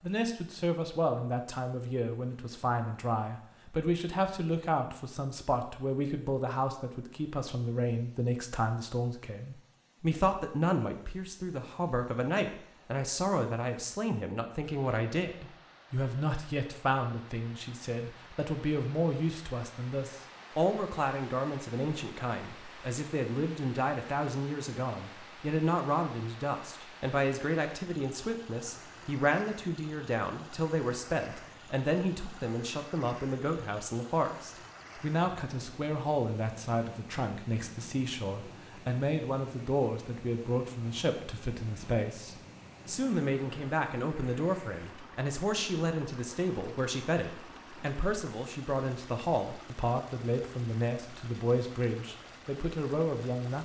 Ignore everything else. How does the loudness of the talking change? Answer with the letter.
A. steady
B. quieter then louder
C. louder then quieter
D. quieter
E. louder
A.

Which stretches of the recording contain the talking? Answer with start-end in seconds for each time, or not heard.
0.0-53.6.